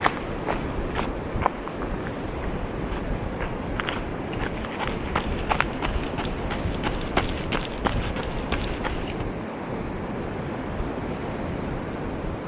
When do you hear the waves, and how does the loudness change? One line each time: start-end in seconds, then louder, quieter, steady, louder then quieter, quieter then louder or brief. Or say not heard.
0.0-12.4 steady.